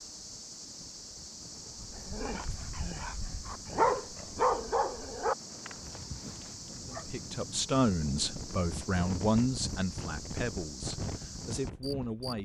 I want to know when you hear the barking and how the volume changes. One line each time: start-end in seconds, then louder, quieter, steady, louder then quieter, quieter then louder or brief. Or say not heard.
1.8-7.0 louder then quieter.